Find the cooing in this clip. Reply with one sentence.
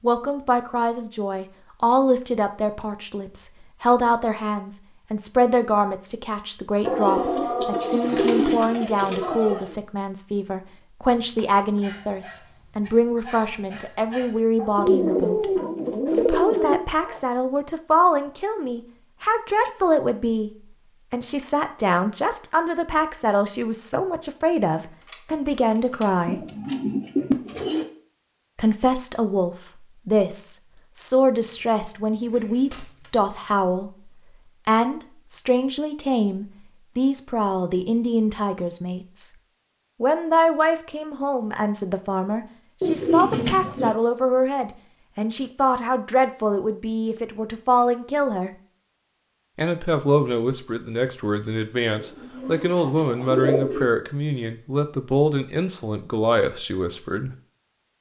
The cooing can be heard from 6.8 to 9.8 s, from 14.8 to 16.8 s, from 26.2 to 27.9 s, from 42.8 to 43.9 s and from 52.0 to 53.9 s.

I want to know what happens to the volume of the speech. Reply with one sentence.
The loudness of the speech stays about the same.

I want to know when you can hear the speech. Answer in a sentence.
You can hear the speech from 0.0 to 20.5 s, from 21.1 to 26.4 s, from 28.6 to 39.3 s, from 40.0 to 48.5 s and from 49.5 to 57.3 s.